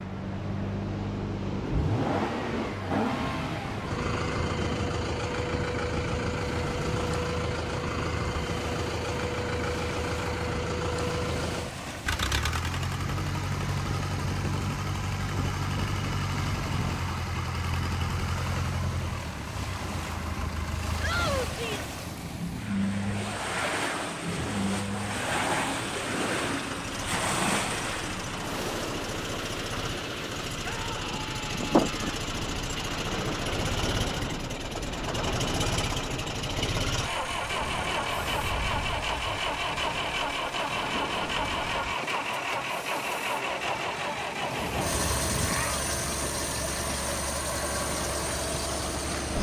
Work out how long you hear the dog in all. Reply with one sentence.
The dog can't be heard in this clip.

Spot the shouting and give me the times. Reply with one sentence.
You can hear the shouting from 21.0 to 21.9 s and from 30.6 to 32.2 s.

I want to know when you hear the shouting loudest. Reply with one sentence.
The volume of the shouting peaks at 21 seconds.